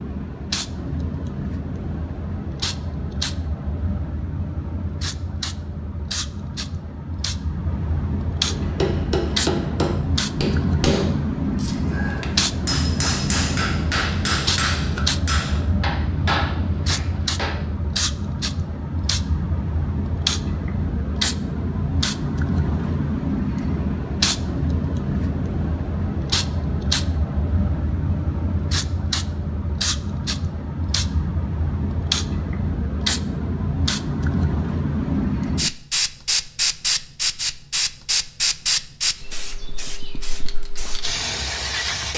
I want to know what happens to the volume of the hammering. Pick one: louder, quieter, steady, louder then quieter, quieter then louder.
steady.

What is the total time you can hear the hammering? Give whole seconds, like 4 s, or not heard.
9 s.